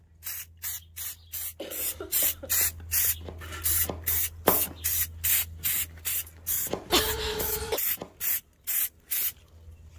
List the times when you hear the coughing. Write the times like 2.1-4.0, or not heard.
1.6-2.6, 6.9-7.8.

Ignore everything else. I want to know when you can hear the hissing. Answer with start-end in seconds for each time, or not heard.
0.0-9.9.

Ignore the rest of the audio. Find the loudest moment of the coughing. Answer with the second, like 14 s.
7 s.